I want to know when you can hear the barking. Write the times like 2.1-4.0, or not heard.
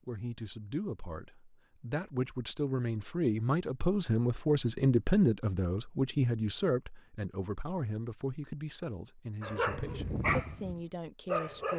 9.4-11.7.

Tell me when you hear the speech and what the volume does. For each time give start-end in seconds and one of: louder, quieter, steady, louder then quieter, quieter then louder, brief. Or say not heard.
0.1-11.7 louder then quieter.